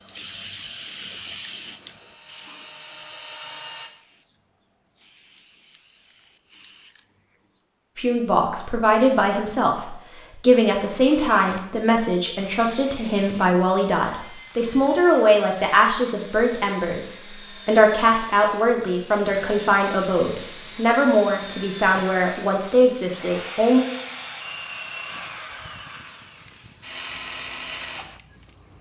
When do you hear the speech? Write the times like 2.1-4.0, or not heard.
8.0-23.8.